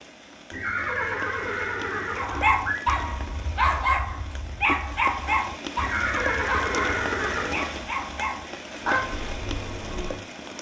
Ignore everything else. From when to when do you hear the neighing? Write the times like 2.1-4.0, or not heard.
0.5-2.8, 5.8-7.5.